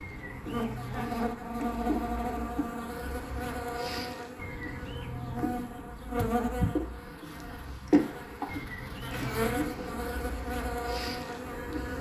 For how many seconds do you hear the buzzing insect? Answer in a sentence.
The buzzing insect can be heard for 12 seconds in total.